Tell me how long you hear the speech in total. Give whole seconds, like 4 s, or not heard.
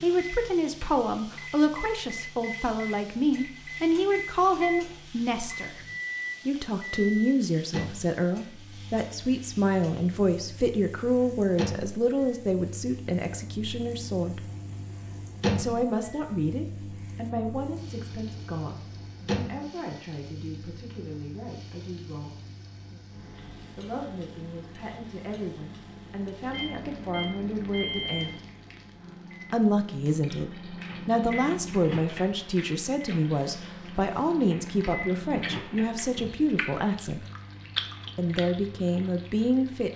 35 s.